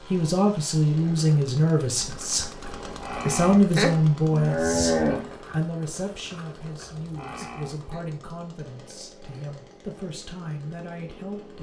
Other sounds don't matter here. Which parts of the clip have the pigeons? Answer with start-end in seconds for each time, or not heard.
not heard.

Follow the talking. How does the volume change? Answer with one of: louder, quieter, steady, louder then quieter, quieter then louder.
quieter.